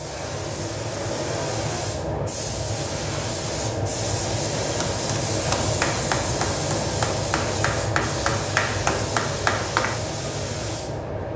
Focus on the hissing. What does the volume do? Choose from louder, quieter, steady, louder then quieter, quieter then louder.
steady.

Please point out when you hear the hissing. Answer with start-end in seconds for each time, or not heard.
0.0-11.3.